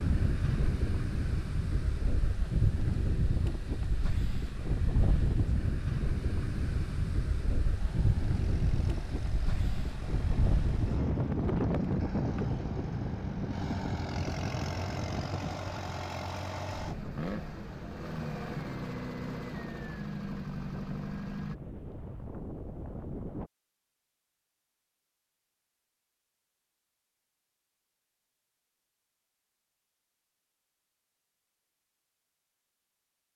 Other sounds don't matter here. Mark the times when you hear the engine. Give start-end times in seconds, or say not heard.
7.8-21.6.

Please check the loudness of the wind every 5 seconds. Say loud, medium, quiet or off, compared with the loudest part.
loud, loud, loud, medium, medium, off, off.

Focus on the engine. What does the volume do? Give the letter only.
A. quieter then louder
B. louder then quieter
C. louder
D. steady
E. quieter
C.